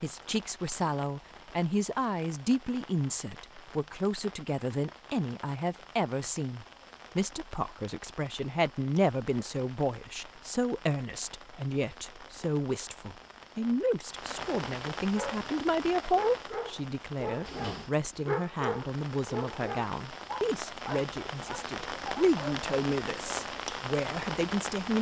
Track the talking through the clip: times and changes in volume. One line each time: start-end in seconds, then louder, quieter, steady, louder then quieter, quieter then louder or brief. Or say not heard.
0.0-24.9 steady.